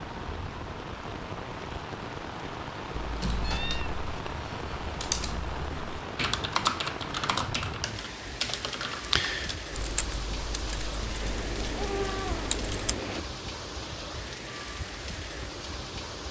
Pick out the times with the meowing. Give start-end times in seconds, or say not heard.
3.4-4.0, 11.2-13.2.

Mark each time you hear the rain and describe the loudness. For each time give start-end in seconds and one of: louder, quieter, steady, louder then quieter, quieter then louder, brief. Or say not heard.
0.0-16.2 steady.